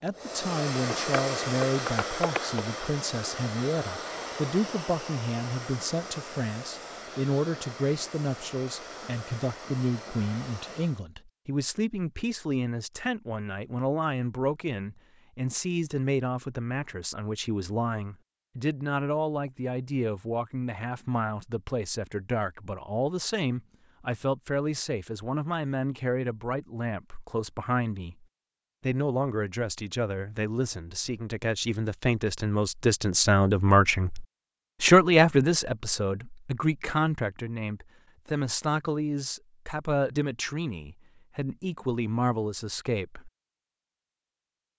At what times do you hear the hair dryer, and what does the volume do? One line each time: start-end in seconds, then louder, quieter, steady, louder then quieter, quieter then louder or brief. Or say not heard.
0.1-11.1 quieter.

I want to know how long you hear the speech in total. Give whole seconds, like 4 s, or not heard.
43 s.